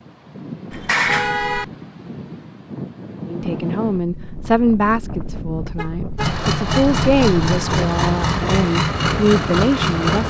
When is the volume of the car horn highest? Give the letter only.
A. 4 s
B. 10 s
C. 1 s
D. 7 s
C.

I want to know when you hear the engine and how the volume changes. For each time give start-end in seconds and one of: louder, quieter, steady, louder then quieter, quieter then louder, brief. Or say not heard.
6.2-10.2 steady.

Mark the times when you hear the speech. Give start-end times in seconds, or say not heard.
3.2-10.2.